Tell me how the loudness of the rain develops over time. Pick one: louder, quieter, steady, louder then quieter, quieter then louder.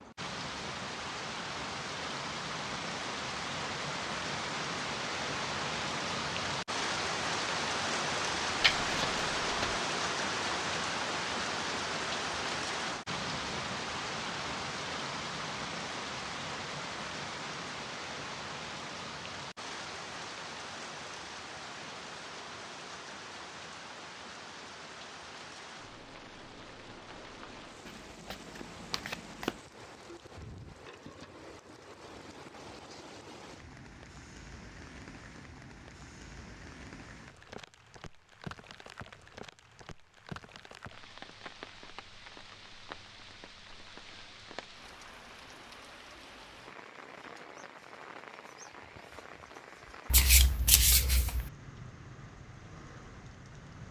quieter.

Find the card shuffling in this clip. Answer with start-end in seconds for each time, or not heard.
8.6-9.8, 27.9-29.6, 50.1-51.5.